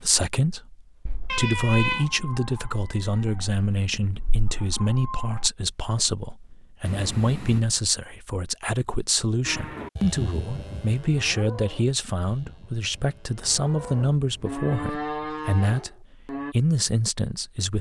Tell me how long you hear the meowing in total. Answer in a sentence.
The meowing can be heard for 3 seconds in total.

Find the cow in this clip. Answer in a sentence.
You can hear the cow from 9.4 to 16.6 s.